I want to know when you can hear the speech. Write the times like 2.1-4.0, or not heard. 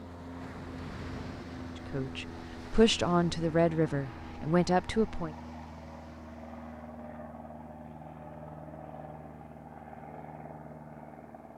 1.9-5.3.